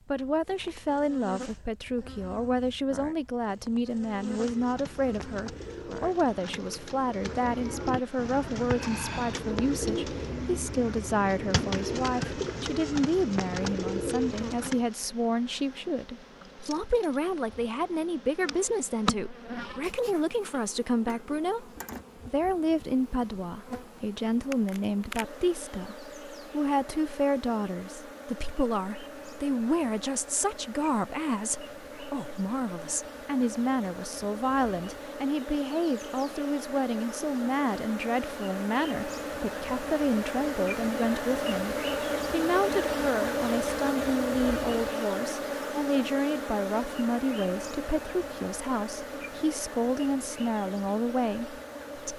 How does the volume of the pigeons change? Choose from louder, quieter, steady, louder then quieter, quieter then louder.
louder.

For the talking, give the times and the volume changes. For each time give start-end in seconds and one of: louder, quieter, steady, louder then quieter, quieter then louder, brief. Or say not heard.
0.1-52.1 steady.